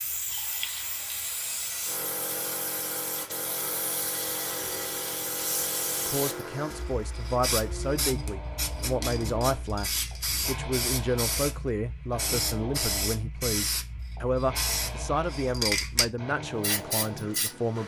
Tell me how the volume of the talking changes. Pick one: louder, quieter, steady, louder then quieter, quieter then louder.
steady.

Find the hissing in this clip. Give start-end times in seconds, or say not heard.
0.0-17.8.